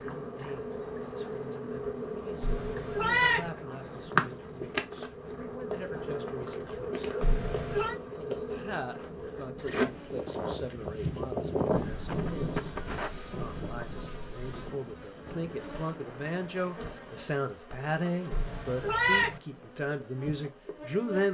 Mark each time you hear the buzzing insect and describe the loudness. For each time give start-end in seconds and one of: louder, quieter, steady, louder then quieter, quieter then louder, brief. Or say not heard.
0.0-21.2 quieter.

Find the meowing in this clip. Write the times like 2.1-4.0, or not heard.
2.4-3.5, 7.2-8.0, 18.3-19.4.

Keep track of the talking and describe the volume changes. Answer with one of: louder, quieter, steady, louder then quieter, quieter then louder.
louder.